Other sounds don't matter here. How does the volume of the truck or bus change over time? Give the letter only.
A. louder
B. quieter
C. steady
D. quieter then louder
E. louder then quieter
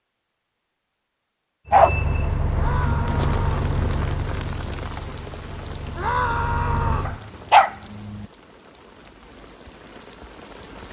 D.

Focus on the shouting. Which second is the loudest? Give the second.
6 s.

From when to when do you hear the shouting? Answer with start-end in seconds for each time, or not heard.
2.5-3.6, 6.0-7.2.